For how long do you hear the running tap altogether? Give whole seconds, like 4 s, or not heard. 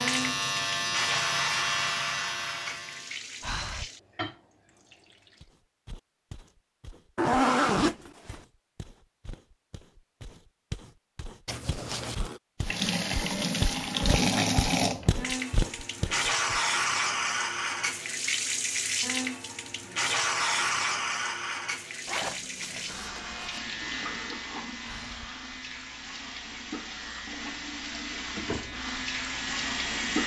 23 s.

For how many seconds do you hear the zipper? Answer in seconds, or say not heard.
4 s.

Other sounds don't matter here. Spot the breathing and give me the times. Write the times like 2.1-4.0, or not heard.
3.4-3.9, 24.8-25.3.